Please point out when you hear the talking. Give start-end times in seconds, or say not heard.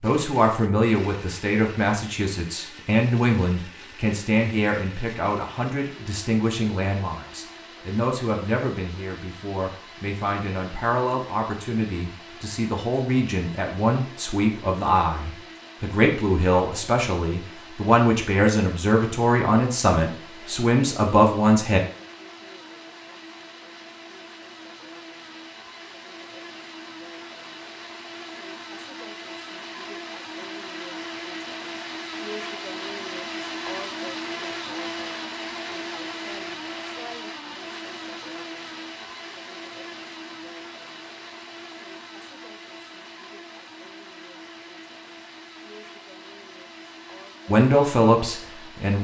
0.0-21.8, 47.5-49.0.